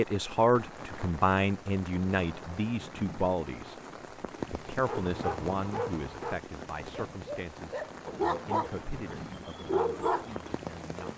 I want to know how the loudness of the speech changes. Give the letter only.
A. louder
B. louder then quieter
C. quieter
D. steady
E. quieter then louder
C.